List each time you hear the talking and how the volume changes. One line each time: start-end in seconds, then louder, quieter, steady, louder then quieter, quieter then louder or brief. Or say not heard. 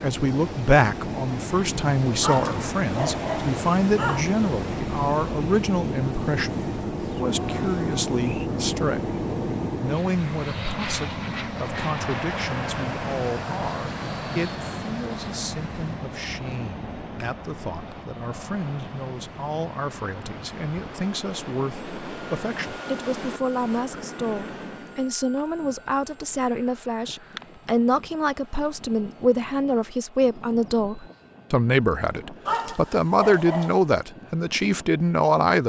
0.0-35.6 quieter then louder.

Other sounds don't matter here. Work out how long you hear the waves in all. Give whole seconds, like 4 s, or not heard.
25 s.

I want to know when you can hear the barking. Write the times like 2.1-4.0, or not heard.
2.2-4.2, 32.5-33.9.